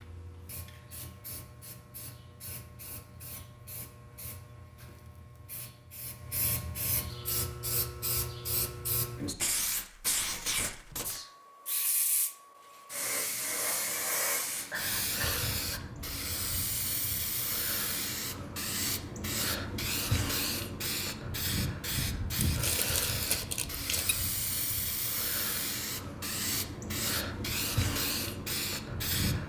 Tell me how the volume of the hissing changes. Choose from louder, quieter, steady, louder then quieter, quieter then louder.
louder.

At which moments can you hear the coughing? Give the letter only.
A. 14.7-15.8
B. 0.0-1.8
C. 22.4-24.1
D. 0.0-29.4
A.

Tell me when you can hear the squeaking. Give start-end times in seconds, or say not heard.
22.4-24.1.